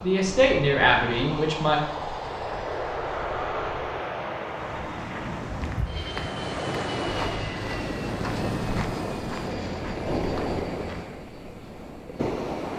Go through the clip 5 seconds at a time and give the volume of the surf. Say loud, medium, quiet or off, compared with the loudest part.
quiet, loud, loud.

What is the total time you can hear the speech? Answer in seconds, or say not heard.
2 s.